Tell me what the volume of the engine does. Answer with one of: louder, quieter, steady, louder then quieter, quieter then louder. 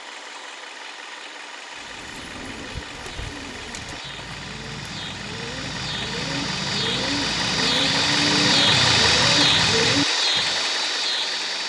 louder.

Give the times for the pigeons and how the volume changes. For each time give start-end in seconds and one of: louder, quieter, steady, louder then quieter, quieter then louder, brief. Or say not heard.
1.7-10.6 louder.